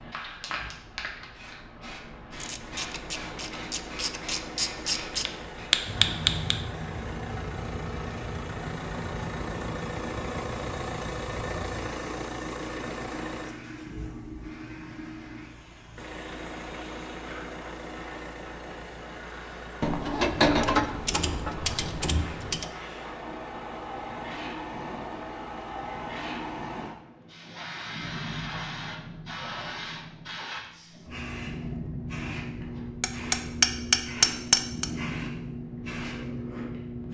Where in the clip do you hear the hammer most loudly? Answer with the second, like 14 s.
34 s.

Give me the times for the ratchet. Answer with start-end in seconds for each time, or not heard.
2.4-5.2, 19.8-22.6.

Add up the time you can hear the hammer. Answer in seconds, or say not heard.
3 s.